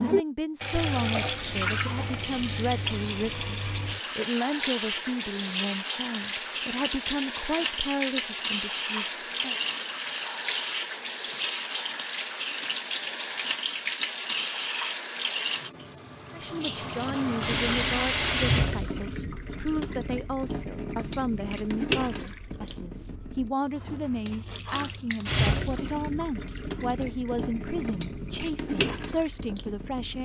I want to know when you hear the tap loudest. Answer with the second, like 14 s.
18 s.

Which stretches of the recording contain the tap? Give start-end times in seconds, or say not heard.
0.0-30.2.